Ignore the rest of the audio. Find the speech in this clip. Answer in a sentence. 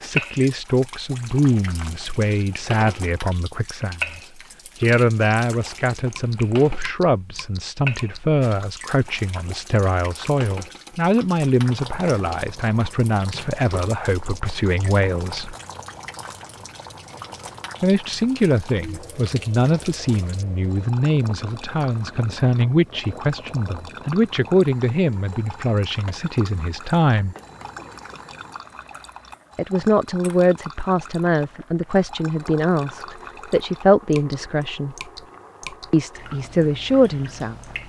You can hear the speech from 0.0 to 4.2 s, from 4.8 to 15.6 s, from 17.8 to 27.4 s, from 29.6 to 35.0 s and from 35.9 to 37.5 s.